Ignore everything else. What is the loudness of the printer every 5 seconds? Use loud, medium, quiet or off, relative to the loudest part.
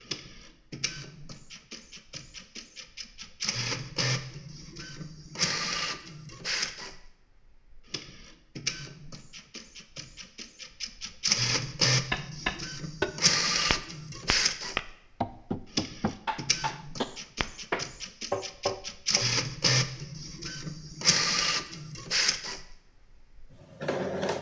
medium, medium, loud, loud, loud.